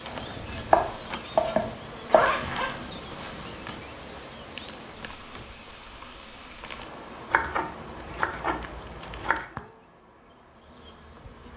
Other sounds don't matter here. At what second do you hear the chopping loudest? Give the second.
1 s.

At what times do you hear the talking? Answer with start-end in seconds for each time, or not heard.
not heard.